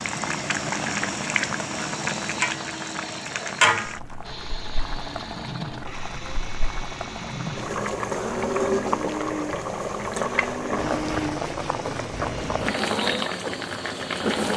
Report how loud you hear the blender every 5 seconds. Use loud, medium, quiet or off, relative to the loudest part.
medium, medium, loud.